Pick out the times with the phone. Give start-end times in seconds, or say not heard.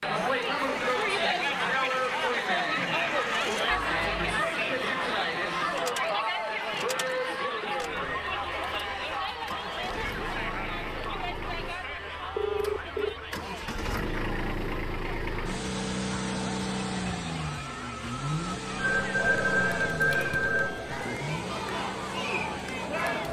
3.8-4.2, 12.3-13.2, 18.8-21.1.